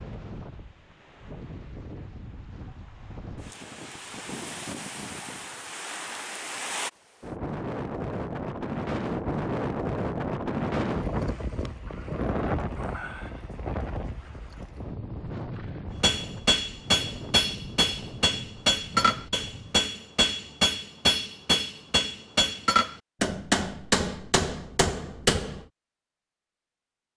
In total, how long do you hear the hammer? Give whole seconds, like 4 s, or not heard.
10 s.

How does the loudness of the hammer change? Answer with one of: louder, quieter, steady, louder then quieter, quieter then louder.
steady.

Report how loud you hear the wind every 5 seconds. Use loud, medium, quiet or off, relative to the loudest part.
medium, loud, loud, medium, off, off.